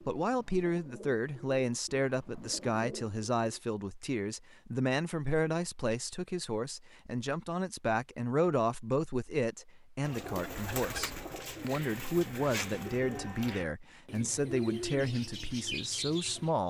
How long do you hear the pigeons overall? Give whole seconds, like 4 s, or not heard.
10 s.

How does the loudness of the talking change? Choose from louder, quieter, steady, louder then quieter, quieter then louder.
steady.